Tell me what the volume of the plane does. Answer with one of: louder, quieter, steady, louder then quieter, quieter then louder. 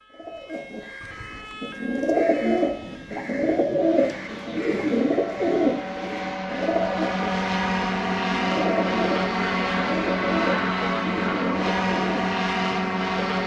louder.